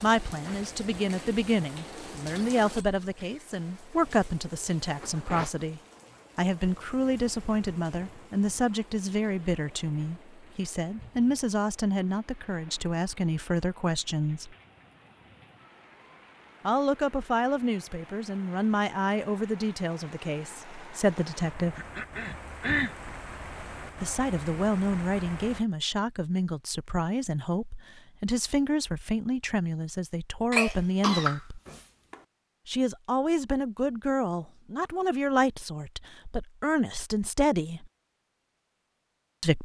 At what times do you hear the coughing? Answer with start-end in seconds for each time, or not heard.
2.4-3.4, 21.8-22.9, 30.5-32.1.